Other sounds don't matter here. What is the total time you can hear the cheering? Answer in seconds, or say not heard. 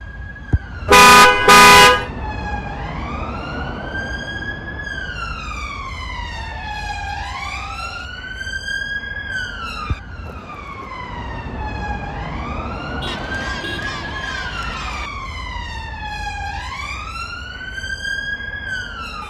4 s.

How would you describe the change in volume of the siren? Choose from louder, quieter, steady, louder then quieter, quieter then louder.
steady.